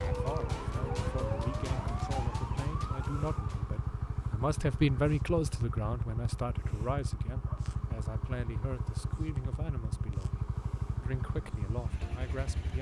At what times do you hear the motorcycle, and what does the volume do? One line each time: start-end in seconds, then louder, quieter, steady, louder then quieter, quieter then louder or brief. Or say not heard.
0.0-12.7 steady.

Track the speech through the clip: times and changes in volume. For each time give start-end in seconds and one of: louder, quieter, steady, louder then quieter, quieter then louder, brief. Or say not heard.
0.1-12.7 louder then quieter.